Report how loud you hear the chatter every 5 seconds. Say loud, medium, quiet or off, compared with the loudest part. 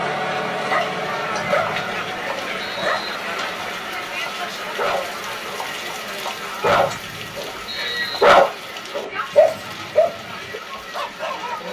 loud, medium, medium.